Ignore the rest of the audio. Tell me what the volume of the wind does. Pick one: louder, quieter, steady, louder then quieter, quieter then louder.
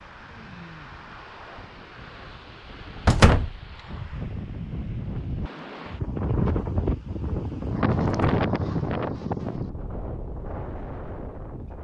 louder then quieter.